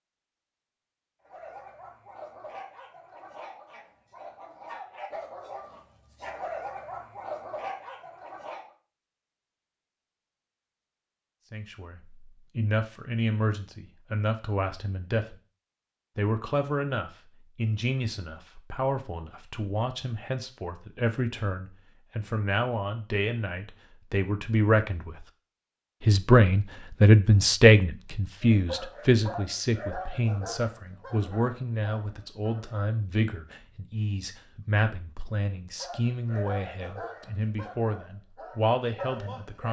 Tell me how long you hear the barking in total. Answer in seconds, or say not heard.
16 s.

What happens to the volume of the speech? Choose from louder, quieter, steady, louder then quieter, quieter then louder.
louder then quieter.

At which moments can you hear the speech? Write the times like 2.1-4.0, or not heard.
11.5-15.3, 16.1-25.2, 26.0-39.6.